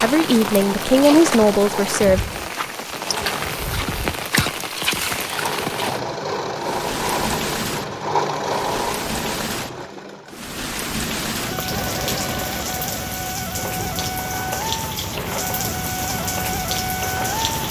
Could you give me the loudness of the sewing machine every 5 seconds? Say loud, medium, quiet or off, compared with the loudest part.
medium, loud, medium, medium.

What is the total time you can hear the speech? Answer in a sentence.
The speech can be heard for 2 seconds in total.